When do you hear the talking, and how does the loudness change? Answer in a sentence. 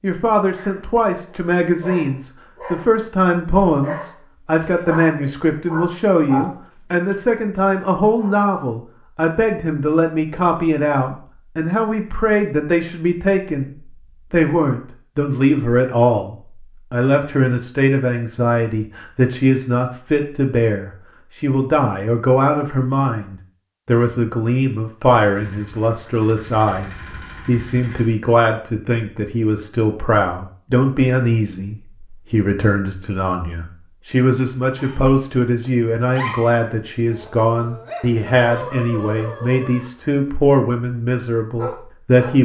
You can hear the talking from 0.0 to 42.3 s, at a steady volume.